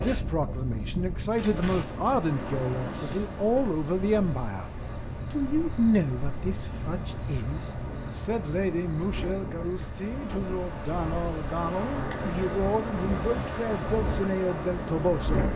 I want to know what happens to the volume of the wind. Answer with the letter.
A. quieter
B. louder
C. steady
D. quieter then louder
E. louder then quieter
D.